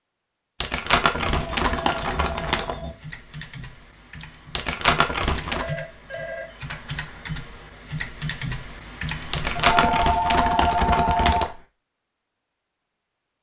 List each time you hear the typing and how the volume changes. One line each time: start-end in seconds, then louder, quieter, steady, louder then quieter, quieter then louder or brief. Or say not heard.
1.9-11.4 louder.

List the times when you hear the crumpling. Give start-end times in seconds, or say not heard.
0.6-2.8, 4.5-5.7, 9.3-11.5.